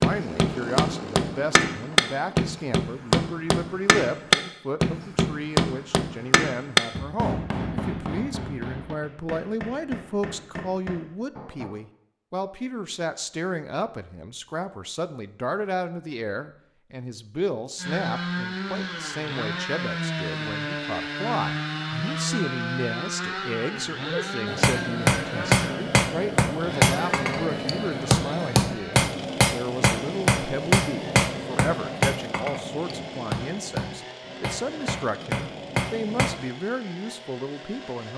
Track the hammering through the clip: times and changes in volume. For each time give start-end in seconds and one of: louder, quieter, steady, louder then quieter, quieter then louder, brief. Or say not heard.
0.0-11.7 quieter
24.4-36.4 quieter.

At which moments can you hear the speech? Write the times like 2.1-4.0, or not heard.
0.0-38.1.